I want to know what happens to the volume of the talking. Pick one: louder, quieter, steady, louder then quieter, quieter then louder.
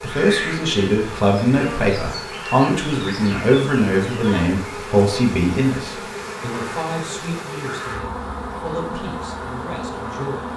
quieter.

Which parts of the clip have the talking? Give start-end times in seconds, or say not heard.
0.0-10.5.